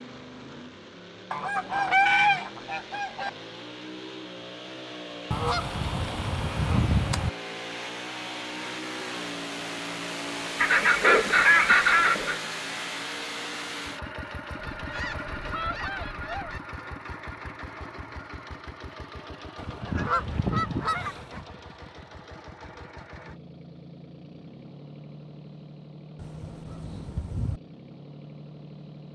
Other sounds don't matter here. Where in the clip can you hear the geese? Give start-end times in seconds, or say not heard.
1.3-3.3, 5.3-7.3, 10.6-12.4, 14.6-16.6, 19.6-21.4, 26.1-27.6.